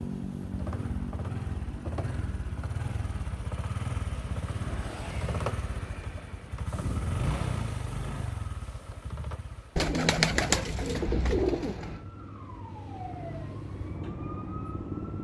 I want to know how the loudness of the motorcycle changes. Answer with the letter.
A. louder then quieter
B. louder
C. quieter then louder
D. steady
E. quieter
E.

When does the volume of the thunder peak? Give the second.
7 s.